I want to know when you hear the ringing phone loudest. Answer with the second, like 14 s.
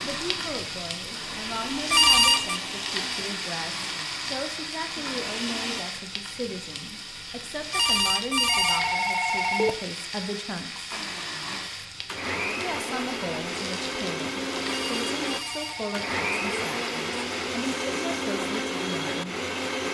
2 s.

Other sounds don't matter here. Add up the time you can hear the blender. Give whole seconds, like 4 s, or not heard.
15 s.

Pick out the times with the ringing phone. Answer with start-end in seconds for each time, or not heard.
1.9-2.6, 7.7-9.7, 14.7-16.6.